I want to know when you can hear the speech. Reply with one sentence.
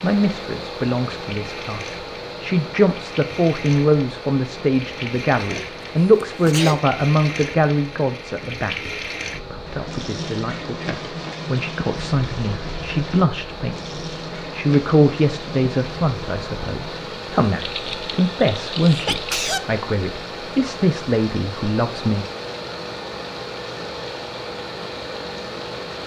The speech can be heard from 0.0 to 8.9 s and from 9.5 to 22.2 s.